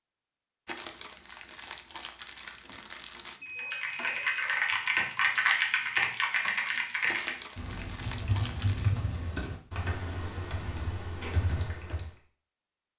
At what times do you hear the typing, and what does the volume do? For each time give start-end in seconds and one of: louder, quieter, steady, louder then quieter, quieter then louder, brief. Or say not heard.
3.5-12.2 quieter.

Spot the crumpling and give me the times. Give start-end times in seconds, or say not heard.
0.7-3.4, 7.0-8.9.